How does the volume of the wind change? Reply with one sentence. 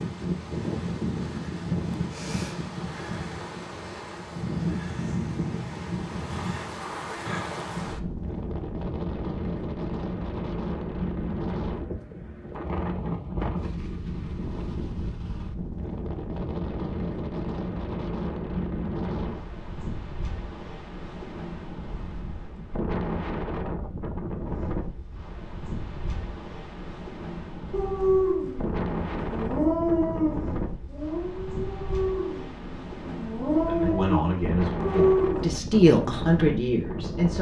The loudness of the wind stays about the same.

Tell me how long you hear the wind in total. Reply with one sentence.
The wind can be heard for 37 seconds in total.